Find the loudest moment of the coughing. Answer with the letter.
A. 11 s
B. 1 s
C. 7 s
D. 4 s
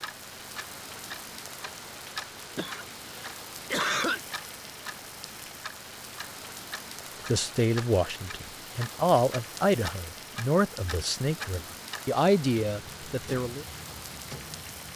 D.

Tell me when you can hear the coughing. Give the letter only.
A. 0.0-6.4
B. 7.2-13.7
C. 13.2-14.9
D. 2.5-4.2
D.